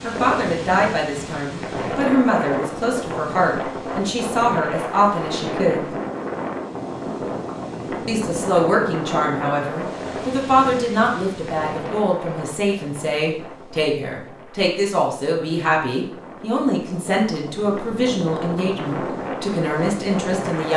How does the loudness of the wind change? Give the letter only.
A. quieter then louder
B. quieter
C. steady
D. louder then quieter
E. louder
A.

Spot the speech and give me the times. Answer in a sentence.
You can hear the speech from 0.0 to 5.9 s and from 8.1 to 20.7 s.